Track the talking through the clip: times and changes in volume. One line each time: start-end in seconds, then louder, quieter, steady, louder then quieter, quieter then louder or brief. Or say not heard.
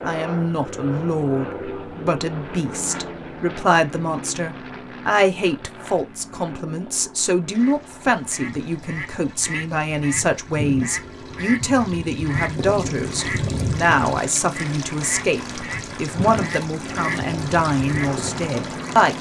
0.0-19.1 steady.